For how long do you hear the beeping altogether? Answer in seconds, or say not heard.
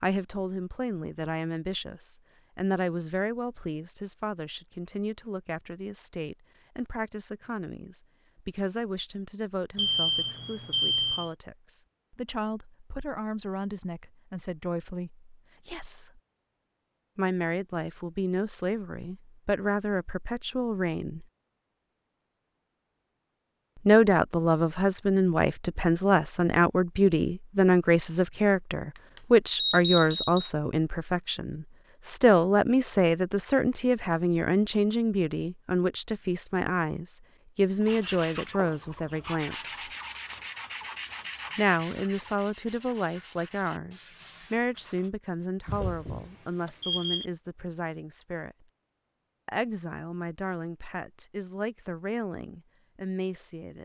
5 s.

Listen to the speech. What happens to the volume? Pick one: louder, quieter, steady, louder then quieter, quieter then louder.
louder then quieter.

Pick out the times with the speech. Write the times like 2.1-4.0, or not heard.
0.0-16.2, 17.1-21.2, 23.9-39.8, 41.5-48.5, 49.5-53.8.